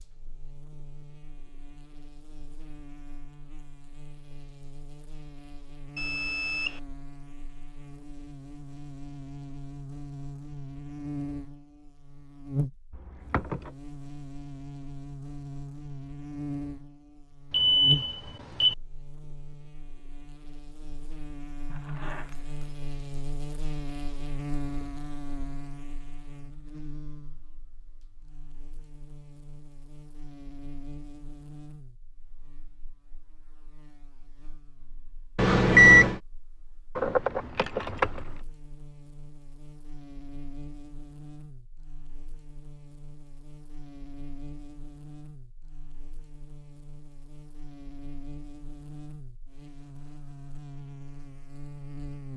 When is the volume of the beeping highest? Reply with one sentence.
The loudest moment of the beeping is at 36 seconds.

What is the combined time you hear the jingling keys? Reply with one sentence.
You can hear the jingling keys for 3 seconds altogether.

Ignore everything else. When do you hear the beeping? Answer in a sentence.
The beeping can be heard from 6.0 to 6.8 s, from 17.5 to 18.8 s and from 35.4 to 36.2 s.